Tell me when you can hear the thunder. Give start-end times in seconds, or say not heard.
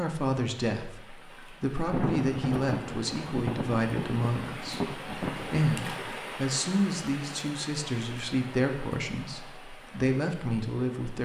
1.8-6.1.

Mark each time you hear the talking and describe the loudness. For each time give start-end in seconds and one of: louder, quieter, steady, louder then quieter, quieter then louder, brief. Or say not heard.
0.0-11.2 steady.